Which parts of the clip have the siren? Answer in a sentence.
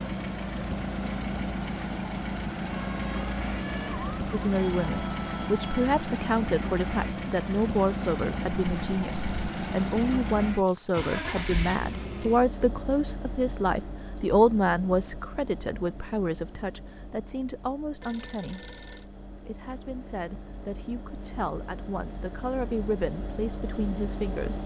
The siren can be heard from 2.6 to 4.3 s.